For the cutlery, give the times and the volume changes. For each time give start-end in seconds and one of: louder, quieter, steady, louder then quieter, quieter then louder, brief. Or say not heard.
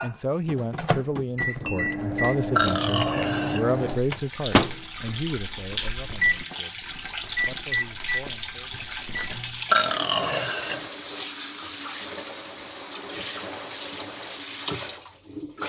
not heard.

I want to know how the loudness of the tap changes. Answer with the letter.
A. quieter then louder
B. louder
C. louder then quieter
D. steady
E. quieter
D.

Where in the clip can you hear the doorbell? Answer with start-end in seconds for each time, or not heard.
not heard.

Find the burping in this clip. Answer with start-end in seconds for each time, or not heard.
2.5-3.7, 9.7-10.9.